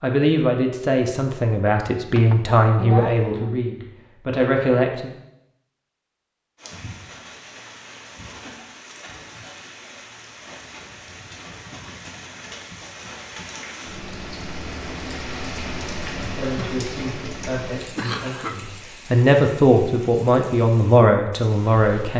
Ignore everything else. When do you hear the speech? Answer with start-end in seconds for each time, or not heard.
0.0-5.1, 16.1-22.1.